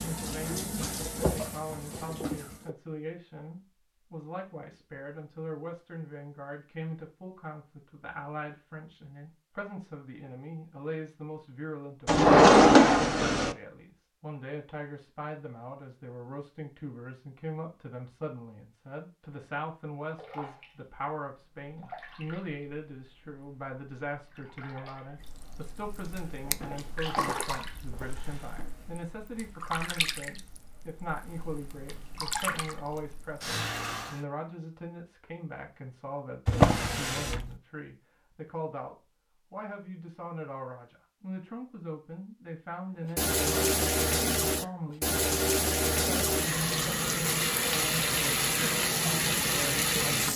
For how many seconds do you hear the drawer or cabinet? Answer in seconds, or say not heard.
4 s.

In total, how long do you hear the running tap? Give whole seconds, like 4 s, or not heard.
24 s.